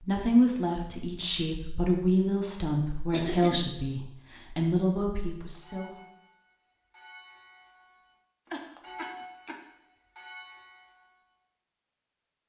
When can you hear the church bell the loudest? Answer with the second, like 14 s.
9 s.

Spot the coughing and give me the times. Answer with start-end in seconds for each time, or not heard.
3.1-3.6, 8.5-9.6.